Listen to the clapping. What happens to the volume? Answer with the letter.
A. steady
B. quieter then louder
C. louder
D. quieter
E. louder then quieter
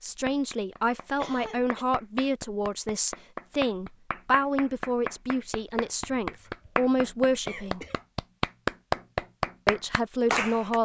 C.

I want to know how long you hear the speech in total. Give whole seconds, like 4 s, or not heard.
9 s.